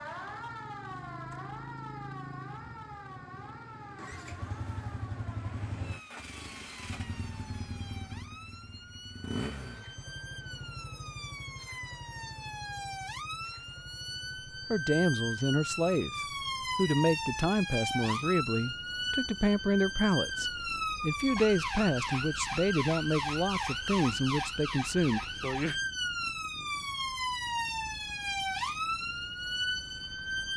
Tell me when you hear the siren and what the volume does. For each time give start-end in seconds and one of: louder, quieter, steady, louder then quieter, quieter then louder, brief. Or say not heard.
0.0-30.5 louder.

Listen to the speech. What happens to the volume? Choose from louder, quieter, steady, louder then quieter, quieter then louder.
steady.